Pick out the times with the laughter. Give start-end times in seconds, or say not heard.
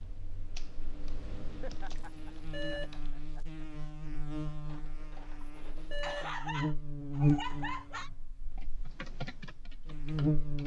1.6-3.6, 6.0-8.1.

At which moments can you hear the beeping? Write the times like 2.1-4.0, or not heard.
2.0-2.9, 5.4-6.3.